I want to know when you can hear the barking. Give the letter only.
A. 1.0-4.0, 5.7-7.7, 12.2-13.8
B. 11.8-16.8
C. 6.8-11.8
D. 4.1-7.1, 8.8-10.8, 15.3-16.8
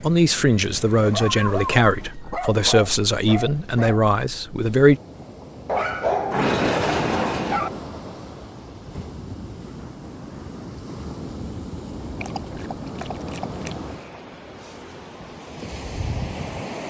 A.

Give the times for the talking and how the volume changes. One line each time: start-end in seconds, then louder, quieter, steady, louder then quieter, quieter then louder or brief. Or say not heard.
0.0-5.0 steady.